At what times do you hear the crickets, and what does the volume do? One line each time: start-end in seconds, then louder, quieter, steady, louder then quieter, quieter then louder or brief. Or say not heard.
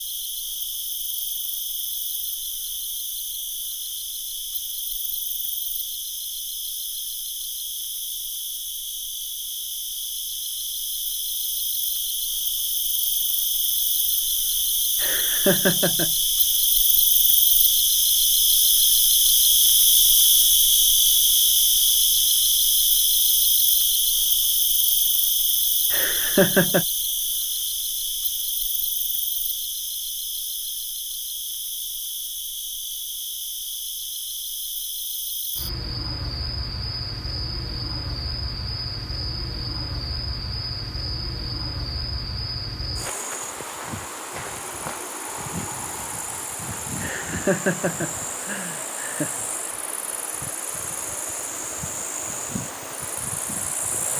0.0-54.1 louder then quieter.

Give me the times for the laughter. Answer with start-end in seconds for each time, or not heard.
15.0-16.1, 25.9-26.9, 47.0-49.4.